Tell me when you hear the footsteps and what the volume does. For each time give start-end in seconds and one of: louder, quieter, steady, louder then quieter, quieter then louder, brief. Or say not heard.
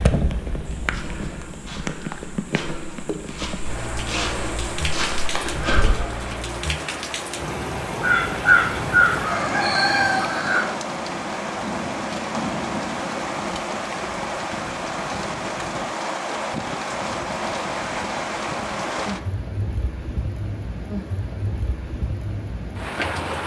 0.7-6.3 louder.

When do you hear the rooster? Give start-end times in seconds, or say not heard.
8.0-10.7.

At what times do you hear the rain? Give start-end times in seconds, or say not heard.
0.0-23.4.